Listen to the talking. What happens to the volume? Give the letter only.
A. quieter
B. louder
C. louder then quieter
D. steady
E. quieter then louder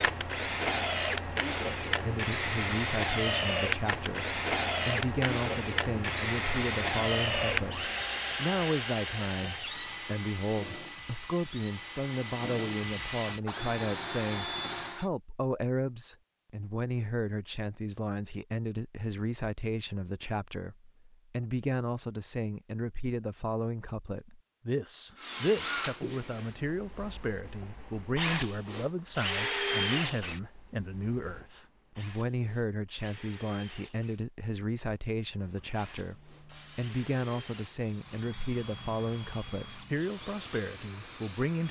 D.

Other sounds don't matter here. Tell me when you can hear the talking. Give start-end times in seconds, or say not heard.
2.0-41.6.